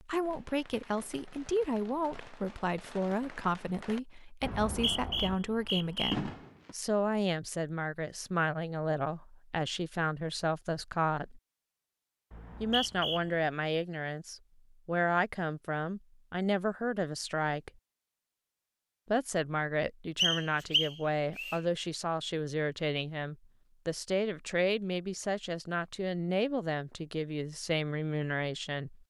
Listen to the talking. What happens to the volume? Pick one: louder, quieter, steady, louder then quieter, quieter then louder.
steady.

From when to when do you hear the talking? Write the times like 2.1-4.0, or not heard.
0.0-11.4, 12.6-17.7, 19.1-29.0.